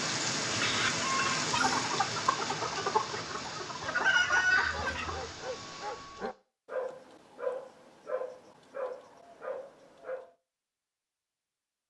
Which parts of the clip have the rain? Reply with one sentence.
You can hear the rain from 0.0 to 6.3 s.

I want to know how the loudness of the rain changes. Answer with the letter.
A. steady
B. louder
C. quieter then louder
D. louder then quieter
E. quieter
E.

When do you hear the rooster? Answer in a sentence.
The rooster can be heard from 0.5 to 5.3 s.